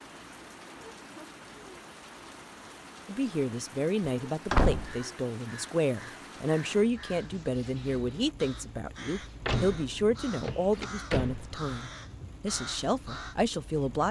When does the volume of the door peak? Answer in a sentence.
The loudest moment of the door is at 5 seconds.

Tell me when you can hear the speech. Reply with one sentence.
You can hear the speech from 3.0 to 14.0 s.